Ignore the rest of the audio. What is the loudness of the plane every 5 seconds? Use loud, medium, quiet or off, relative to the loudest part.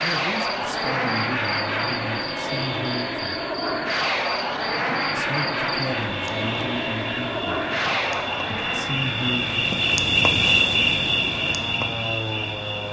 loud, loud, medium.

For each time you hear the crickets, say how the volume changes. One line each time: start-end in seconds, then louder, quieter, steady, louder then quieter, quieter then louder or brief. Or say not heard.
0.0-12.8 louder.